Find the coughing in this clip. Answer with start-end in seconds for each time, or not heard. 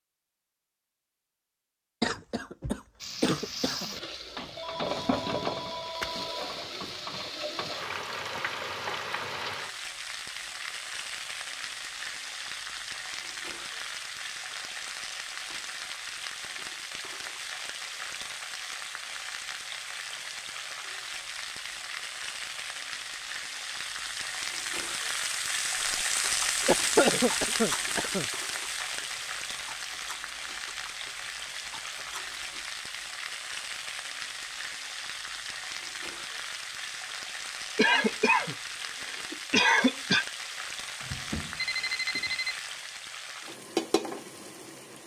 2.0-4.0, 26.6-28.2, 37.8-40.2.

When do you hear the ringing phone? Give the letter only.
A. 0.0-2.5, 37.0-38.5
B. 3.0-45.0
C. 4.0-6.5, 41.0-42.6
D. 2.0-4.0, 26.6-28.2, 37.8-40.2
C.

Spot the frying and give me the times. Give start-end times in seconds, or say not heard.
3.0-45.0.